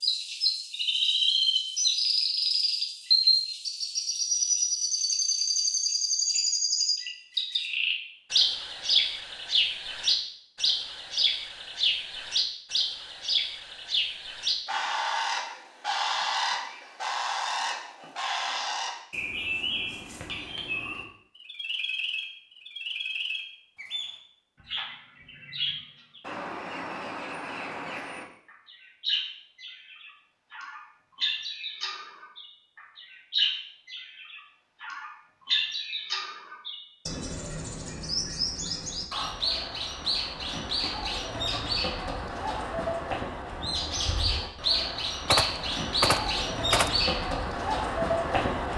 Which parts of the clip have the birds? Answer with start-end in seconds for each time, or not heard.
0.0-48.7.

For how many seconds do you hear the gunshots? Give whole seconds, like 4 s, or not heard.
2 s.